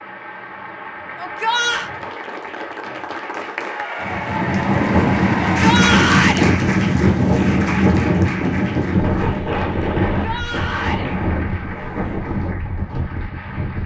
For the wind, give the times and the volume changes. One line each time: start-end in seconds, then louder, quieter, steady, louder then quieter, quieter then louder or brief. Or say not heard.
4.0-13.8 quieter.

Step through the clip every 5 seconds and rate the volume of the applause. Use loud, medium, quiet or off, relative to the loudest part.
loud, loud, medium.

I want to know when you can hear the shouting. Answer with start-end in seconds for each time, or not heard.
1.1-1.9, 5.5-6.5, 10.1-11.1.